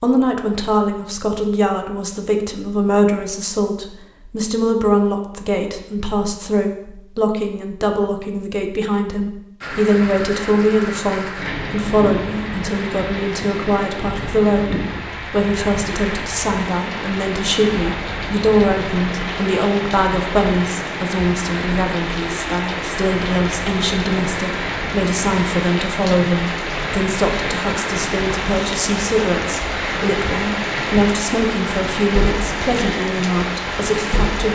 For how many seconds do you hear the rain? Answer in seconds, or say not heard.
25 s.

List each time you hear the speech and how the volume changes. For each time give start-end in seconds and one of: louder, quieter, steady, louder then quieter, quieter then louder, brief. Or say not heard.
0.0-34.5 steady.